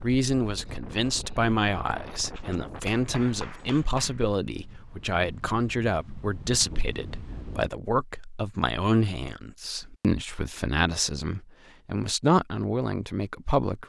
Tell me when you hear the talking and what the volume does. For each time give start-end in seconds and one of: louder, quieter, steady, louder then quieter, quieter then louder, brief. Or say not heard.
0.0-13.8 steady.